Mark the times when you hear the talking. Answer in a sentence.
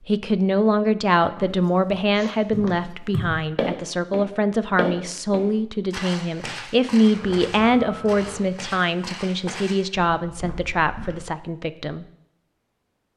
The talking can be heard from 0.1 to 12.1 s.